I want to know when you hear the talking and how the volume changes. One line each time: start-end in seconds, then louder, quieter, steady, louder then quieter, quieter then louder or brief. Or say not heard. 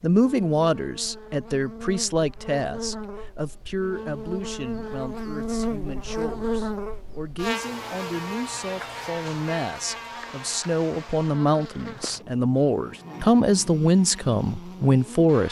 0.0-15.4 quieter then louder.